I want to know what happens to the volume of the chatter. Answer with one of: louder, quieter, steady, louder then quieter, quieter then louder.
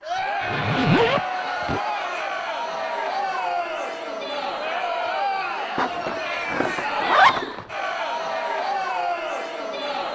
steady.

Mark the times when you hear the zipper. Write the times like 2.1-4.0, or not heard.
0.4-1.8, 5.8-7.7.